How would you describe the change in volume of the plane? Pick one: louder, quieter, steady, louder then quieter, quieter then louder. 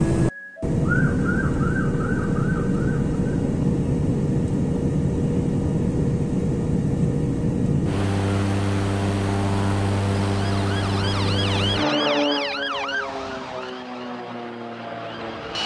quieter.